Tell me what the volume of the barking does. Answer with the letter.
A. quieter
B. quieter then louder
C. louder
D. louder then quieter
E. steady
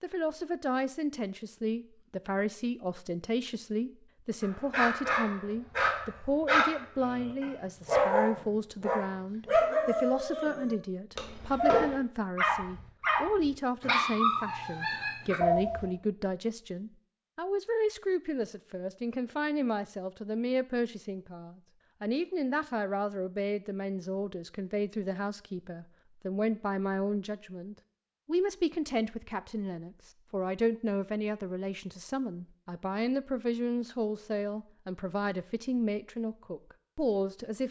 E.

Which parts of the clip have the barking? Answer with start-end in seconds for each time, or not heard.
4.4-15.8.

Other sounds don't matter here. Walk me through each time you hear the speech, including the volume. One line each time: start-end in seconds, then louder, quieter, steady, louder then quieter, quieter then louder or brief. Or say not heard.
0.0-37.6 steady.